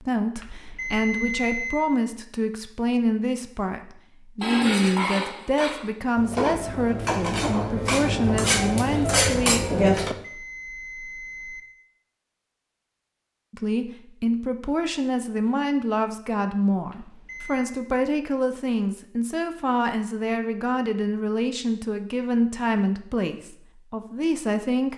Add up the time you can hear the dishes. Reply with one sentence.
The dishes can be heard for 6 seconds in total.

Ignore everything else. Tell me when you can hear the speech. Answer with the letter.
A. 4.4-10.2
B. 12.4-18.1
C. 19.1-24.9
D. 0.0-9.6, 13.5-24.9
D.